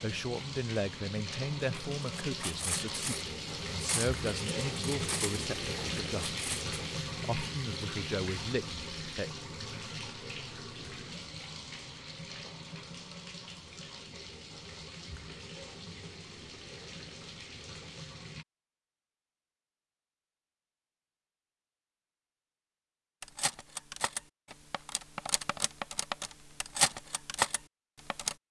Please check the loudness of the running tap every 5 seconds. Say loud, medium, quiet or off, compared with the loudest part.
loud, loud, medium, medium, off, off.